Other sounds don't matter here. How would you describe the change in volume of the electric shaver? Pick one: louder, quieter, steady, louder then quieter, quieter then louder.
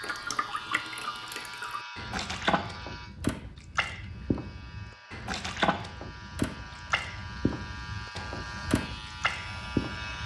quieter then louder.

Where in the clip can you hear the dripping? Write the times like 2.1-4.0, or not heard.
0.0-10.2.